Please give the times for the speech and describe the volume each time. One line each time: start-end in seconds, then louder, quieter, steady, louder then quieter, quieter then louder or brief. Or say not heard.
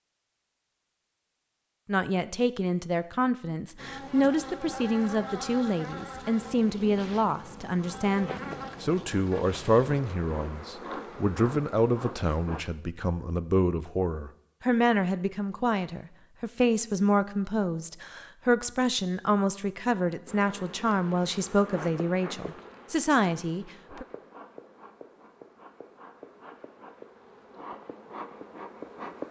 1.9-24.1 steady.